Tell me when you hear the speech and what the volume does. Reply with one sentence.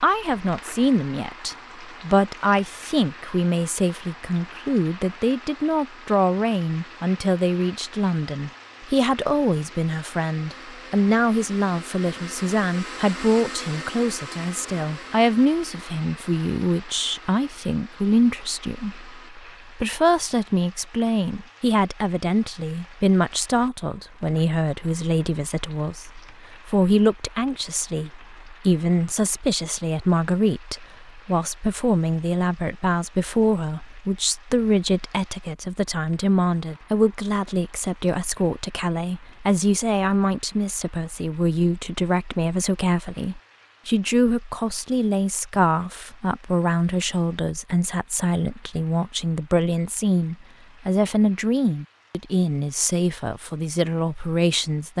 The speech can be heard from 0.0 to 54.9 s, at a steady volume.